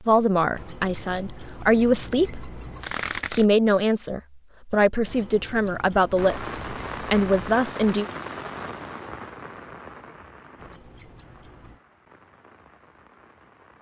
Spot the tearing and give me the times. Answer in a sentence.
The tearing can be heard from 2.8 to 3.5 s.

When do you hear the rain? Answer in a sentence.
You can hear the rain from 6.2 to 13.7 s.